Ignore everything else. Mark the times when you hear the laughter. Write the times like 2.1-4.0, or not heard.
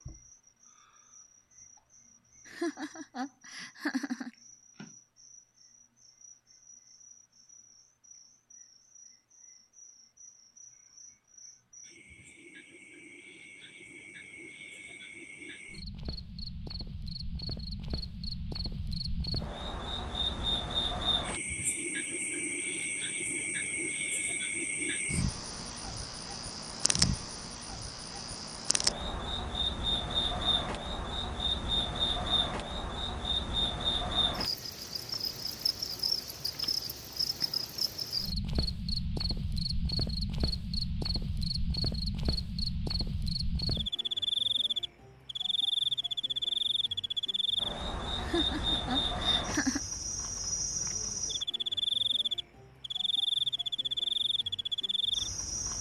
2.5-4.3, 48.1-49.8.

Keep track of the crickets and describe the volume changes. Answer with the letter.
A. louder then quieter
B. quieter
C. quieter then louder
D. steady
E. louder
E.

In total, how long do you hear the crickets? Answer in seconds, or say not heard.
56 s.